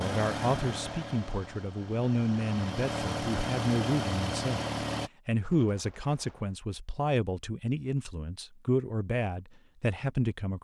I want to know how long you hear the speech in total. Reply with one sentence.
The speech can be heard for 10 seconds in total.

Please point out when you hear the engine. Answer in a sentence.
The engine can be heard from 0.0 to 5.1 s.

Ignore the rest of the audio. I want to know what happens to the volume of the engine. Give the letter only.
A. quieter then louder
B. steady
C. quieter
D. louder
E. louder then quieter
A.